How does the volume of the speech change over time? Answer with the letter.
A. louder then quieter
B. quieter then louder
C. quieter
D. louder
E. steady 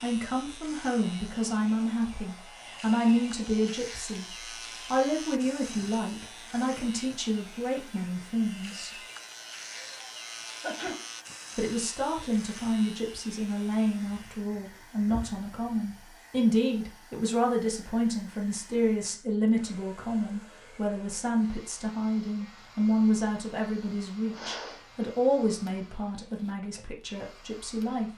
E.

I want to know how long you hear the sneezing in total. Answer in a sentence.
The sneezing can be heard for 2 seconds in total.